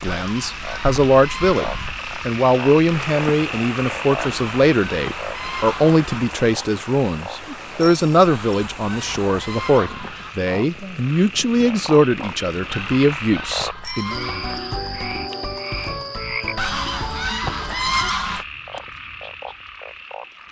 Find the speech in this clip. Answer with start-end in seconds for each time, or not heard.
0.0-14.2.